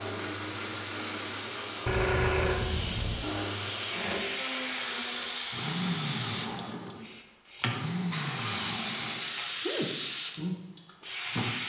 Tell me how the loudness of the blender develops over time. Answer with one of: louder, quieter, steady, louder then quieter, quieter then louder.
steady.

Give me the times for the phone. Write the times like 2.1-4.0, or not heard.
1.9-3.2.